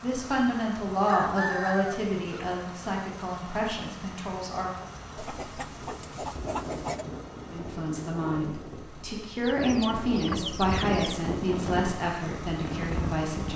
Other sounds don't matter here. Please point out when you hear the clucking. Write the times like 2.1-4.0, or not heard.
1.1-2.5, 5.2-7.0, 9.4-11.2.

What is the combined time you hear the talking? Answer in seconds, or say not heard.
11 s.